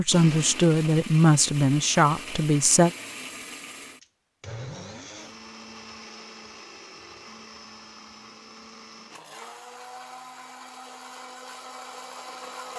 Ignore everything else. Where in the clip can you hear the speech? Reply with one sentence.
You can hear the speech from 0.0 to 2.9 s.